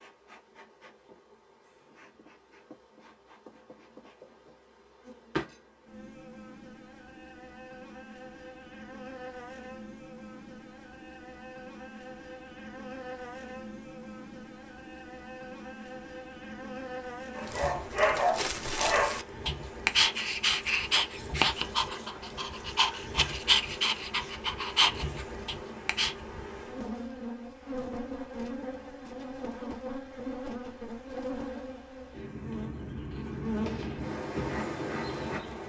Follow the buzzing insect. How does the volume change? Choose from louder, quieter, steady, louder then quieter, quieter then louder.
louder.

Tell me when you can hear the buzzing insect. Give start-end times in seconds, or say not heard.
0.0-35.6.